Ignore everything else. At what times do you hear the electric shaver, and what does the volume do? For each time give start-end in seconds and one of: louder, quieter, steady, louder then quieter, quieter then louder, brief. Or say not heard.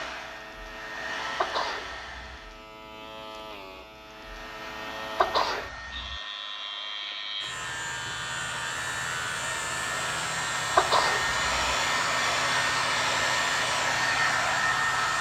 0.0-15.1 louder.